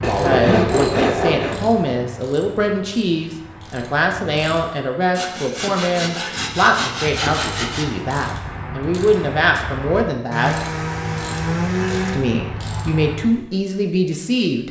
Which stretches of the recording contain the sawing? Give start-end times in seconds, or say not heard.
0.0-1.6, 5.2-7.8, 10.3-12.2.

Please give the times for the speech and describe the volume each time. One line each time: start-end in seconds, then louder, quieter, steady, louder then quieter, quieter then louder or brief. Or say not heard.
0.0-10.6 steady
12.1-14.6 brief.